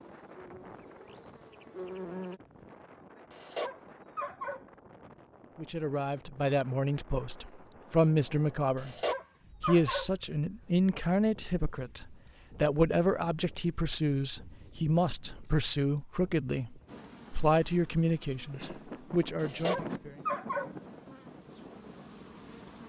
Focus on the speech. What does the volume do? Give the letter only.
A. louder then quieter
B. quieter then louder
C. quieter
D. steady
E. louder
D.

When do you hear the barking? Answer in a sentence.
The barking can be heard from 3.3 to 4.7 s, from 8.8 to 10.1 s and from 19.4 to 20.8 s.